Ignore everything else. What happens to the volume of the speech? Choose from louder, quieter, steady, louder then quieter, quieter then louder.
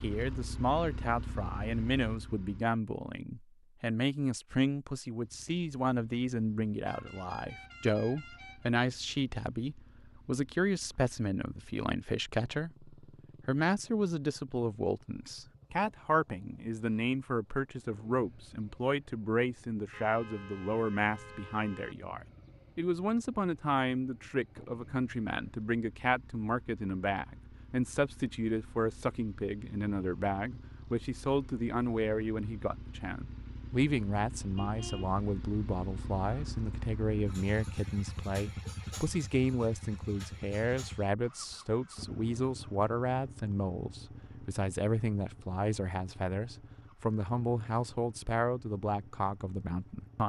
steady.